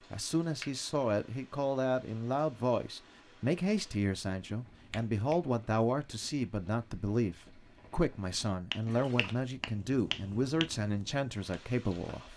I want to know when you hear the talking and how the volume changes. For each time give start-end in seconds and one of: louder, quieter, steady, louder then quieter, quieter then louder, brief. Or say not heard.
0.1-12.3 steady.